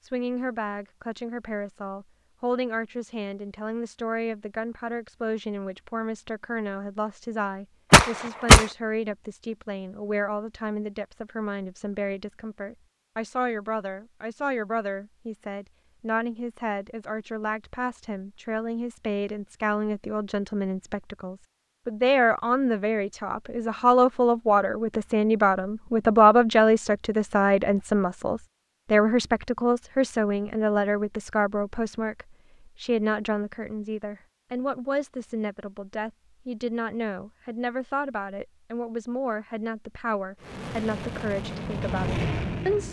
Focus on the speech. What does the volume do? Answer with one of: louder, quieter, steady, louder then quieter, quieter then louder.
louder then quieter.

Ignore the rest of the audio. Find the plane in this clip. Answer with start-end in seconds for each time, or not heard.
40.4-42.8.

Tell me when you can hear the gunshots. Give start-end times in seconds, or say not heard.
7.9-8.7.